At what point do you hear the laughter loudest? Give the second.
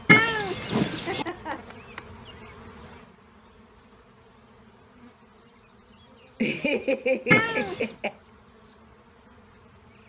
7 s.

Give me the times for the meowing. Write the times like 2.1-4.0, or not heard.
0.1-1.2, 7.3-7.8.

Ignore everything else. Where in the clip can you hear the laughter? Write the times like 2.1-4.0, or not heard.
0.9-1.8, 6.4-8.2.